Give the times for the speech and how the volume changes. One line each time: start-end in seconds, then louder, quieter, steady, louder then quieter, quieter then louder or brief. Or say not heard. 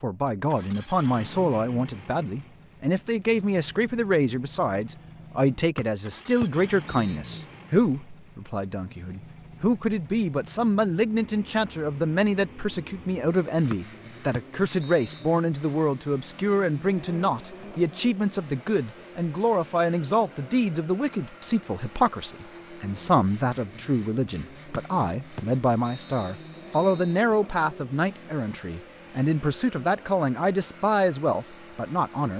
0.0-32.3 steady.